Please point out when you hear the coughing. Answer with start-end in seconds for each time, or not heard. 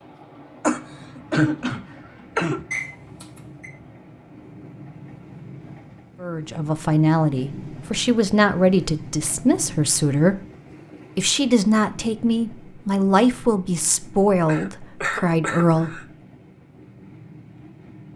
0.6-2.6, 14.4-16.1.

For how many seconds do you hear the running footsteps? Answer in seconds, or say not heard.
not heard.